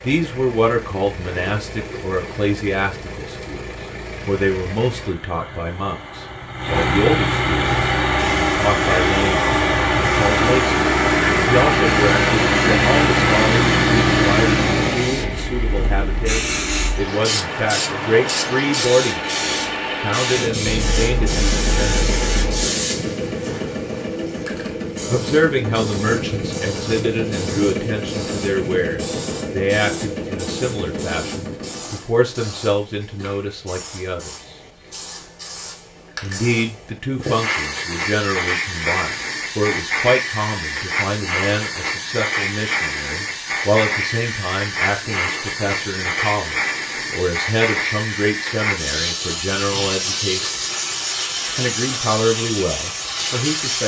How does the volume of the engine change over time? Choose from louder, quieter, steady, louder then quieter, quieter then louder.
louder then quieter.